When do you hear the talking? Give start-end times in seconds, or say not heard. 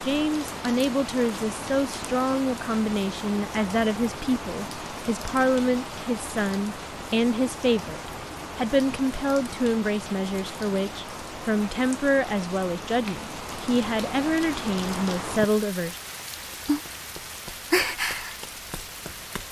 0.1-16.0.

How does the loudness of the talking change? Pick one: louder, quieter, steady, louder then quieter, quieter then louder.
steady.